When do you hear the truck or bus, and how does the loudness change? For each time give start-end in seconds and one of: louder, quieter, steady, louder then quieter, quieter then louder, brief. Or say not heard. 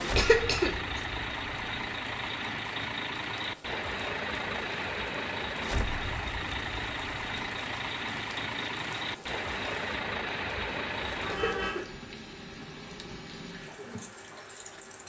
0.0-15.0 quieter.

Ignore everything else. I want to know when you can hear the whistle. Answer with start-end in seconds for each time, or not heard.
not heard.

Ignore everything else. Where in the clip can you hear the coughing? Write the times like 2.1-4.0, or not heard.
0.0-0.8, 11.2-11.9.